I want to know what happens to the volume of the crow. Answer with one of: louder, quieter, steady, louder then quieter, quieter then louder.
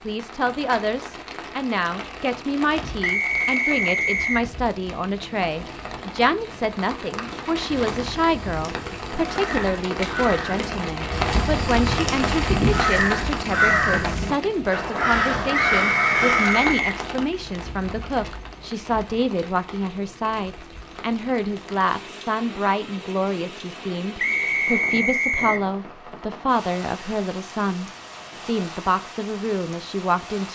louder.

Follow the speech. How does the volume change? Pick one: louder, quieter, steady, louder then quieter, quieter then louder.
steady.